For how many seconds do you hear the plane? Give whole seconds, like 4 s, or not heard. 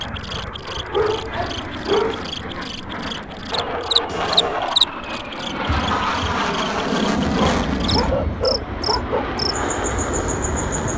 11 s.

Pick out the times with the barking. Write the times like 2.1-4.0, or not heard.
0.9-2.2, 7.2-9.3.